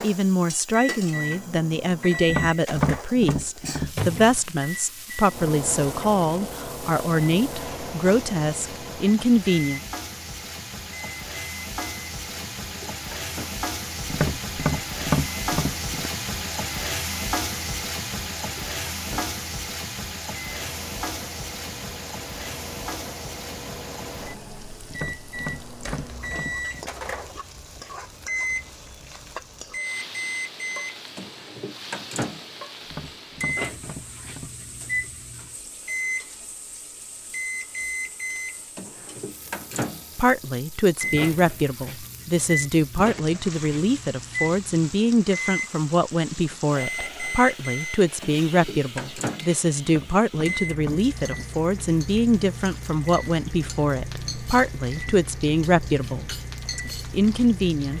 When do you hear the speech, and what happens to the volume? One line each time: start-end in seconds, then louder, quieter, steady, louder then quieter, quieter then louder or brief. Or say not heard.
0.0-9.8 steady
40.1-57.9 steady.